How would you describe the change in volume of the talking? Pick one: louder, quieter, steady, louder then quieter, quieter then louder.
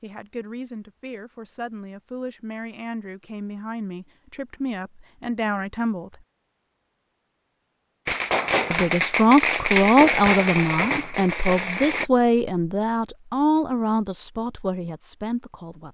louder then quieter.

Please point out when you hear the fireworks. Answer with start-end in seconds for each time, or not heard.
8.1-12.1.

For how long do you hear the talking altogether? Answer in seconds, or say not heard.
13 s.